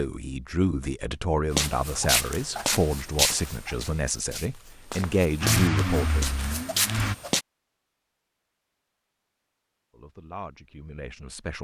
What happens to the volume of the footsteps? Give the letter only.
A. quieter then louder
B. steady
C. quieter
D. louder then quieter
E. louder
A.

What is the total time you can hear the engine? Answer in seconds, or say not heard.
2 s.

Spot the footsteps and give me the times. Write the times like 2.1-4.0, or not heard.
1.5-7.5.